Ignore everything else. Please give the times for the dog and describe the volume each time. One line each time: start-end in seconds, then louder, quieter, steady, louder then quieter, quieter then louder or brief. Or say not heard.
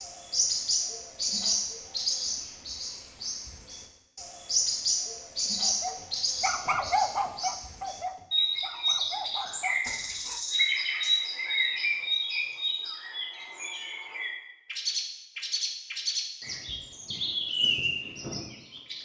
5.6-10.4 quieter.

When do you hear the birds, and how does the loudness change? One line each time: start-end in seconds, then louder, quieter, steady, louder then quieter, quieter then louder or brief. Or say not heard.
0.0-19.0 steady.